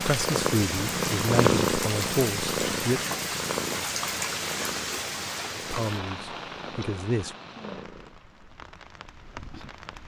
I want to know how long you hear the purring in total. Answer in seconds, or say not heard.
8 s.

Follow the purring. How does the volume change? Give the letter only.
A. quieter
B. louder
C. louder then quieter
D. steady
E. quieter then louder
A.